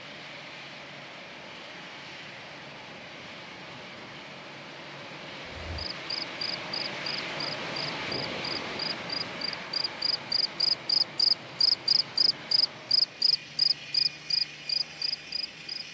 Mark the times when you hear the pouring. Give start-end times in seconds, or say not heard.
not heard.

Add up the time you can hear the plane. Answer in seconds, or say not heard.
16 s.